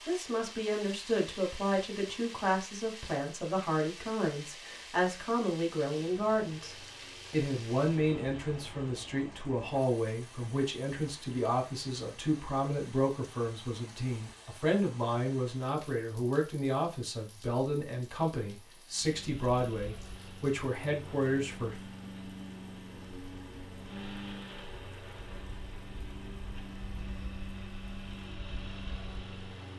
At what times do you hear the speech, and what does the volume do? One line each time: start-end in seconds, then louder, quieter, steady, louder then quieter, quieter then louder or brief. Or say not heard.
0.1-21.9 steady.